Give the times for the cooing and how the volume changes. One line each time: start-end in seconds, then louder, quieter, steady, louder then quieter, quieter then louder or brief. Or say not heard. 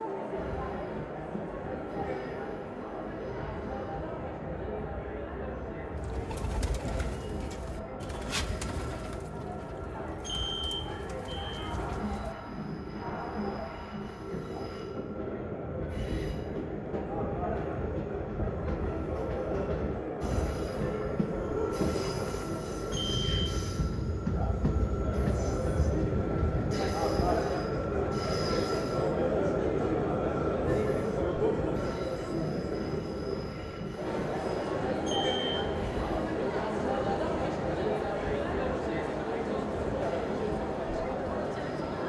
6.0-12.3 quieter.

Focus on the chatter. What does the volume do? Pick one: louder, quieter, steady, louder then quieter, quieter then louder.
louder.